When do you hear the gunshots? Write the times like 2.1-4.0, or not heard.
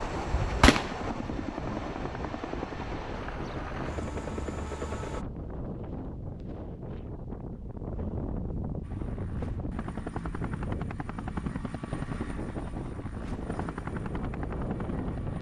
0.2-1.4.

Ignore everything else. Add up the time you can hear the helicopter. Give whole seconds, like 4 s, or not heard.
12 s.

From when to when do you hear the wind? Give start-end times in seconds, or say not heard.
0.0-15.3.